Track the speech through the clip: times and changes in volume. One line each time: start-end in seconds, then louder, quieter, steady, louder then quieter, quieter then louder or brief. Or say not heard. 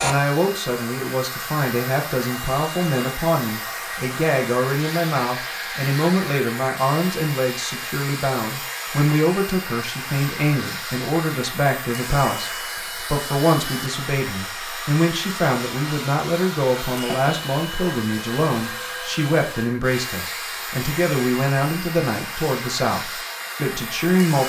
0.0-24.4 steady.